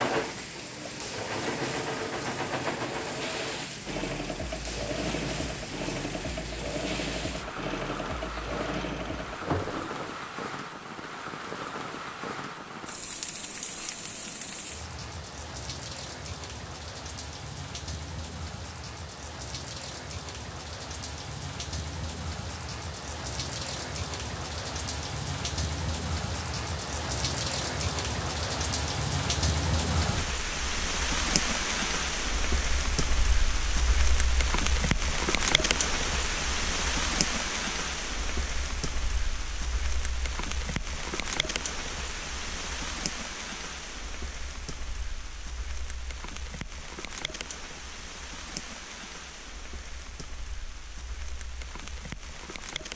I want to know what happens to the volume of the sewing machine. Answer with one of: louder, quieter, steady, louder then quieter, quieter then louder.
steady.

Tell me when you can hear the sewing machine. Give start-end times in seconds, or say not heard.
0.0-10.2.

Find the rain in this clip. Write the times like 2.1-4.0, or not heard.
0.0-52.9.